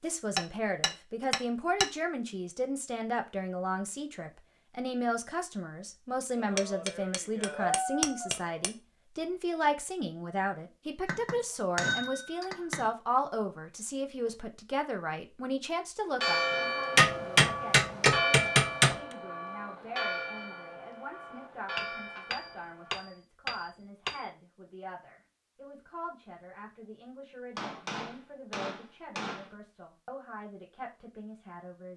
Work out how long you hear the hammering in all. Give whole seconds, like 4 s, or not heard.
12 s.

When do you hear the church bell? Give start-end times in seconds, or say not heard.
16.2-23.1.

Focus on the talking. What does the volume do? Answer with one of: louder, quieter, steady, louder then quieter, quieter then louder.
quieter.